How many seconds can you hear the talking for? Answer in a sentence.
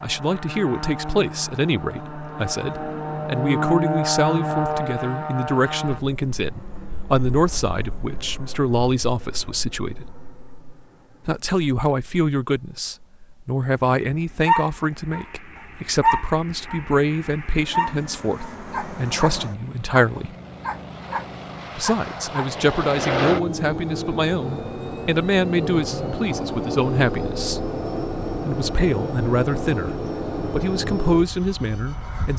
You can hear the talking for 29 seconds altogether.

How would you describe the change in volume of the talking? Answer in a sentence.
The volume of the talking stays about the same.